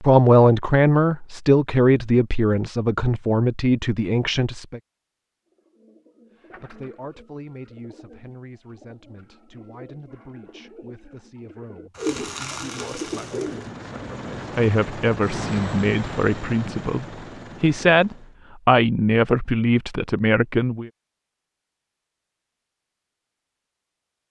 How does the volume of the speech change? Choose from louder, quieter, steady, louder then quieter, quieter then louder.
quieter then louder.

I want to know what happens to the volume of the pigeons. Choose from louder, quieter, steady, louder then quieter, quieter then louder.
louder.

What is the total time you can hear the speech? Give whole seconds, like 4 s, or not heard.
19 s.